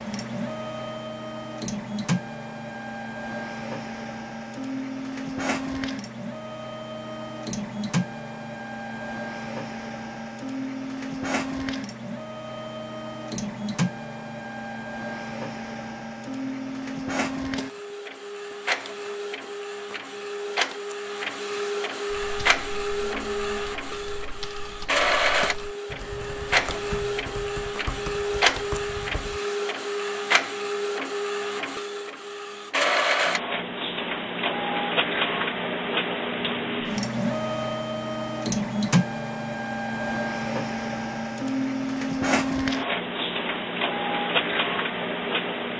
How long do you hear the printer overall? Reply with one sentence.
You can hear the printer for 46 seconds altogether.